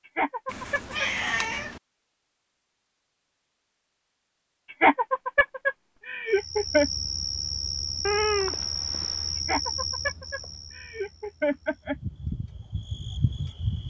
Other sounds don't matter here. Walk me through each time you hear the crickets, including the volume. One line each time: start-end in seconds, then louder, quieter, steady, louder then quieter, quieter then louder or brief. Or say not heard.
6.3-13.8 quieter then louder.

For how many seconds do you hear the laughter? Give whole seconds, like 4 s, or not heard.
6 s.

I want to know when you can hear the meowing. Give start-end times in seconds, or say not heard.
0.5-1.8, 8.1-9.3.